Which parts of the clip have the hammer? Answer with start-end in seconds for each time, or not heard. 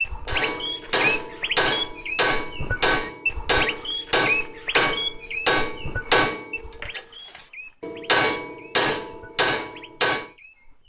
0.2-10.3.